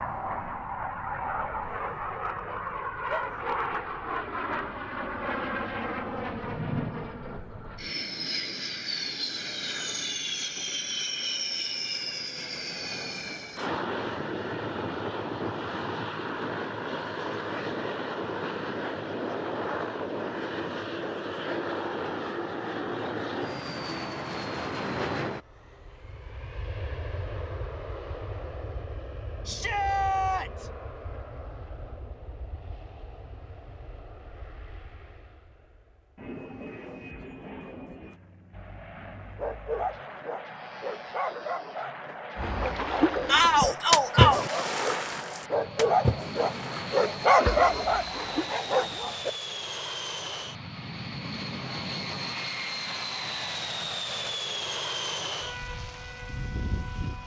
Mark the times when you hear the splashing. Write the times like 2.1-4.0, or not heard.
42.4-48.5.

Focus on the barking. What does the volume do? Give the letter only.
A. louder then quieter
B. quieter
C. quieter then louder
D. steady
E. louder
E.